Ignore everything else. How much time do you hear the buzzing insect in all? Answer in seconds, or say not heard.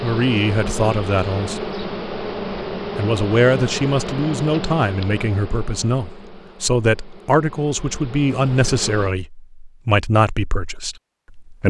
9 s.